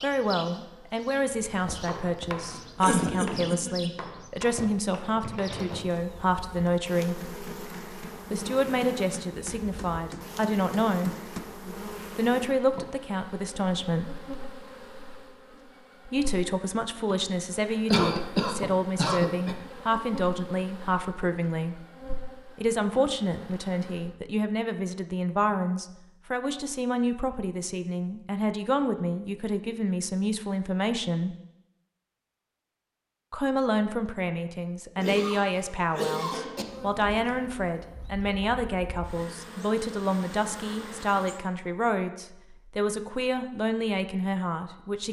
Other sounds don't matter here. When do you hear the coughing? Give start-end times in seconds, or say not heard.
2.8-4.0, 17.9-19.6, 35.0-36.6.